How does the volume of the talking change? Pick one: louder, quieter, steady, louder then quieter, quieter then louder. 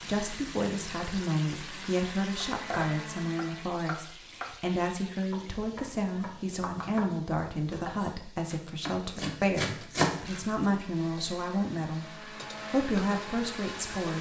steady.